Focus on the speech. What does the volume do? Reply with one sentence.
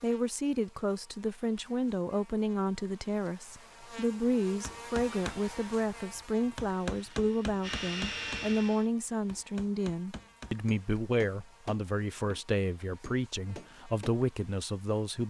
The volume of the speech stays about the same.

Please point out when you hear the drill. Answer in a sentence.
You can hear the drill from 6.8 to 8.9 s.